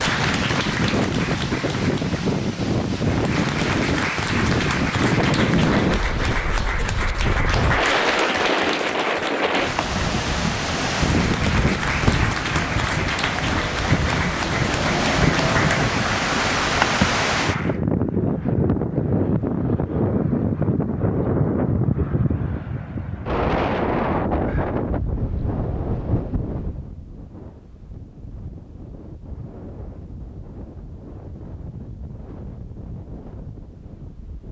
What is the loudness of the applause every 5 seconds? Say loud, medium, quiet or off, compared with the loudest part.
loud, loud, loud, loud, off, off, off.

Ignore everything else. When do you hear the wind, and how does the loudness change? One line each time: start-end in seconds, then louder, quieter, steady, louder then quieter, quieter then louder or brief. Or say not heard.
0.0-34.4 quieter.